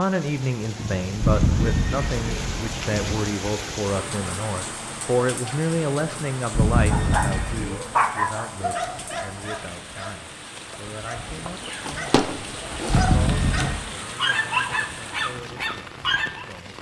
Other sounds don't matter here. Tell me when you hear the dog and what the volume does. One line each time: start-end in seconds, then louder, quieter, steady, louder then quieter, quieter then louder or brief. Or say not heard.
6.8-16.4 quieter then louder.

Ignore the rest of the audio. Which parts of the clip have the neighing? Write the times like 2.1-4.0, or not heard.
1.2-3.0, 6.5-7.7, 12.8-13.8.